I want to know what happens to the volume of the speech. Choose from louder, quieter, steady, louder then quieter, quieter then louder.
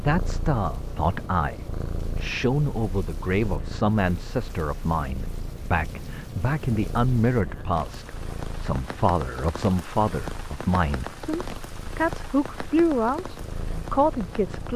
steady.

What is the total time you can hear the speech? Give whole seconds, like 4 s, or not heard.
15 s.